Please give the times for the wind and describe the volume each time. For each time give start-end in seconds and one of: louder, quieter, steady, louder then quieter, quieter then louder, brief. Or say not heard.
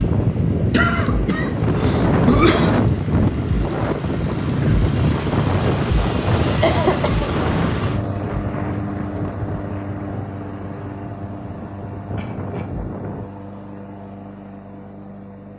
0.0-13.3 quieter.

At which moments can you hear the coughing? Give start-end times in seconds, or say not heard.
0.7-2.7, 6.4-7.3, 12.2-12.7.